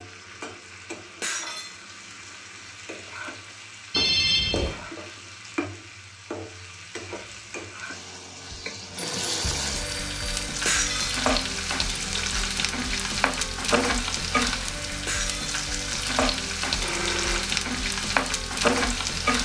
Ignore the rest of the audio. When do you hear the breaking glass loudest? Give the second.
11 s.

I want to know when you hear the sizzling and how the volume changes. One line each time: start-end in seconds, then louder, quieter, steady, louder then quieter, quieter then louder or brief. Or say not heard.
0.0-19.4 louder.